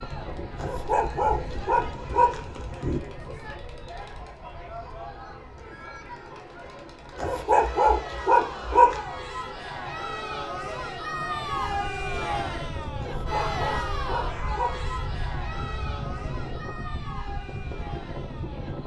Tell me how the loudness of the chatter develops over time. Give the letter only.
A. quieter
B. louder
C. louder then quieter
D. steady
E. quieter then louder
C.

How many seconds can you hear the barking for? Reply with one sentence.
You can hear the barking for 6 seconds altogether.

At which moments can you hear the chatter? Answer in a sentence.
You can hear the chatter from 0.0 to 18.8 s.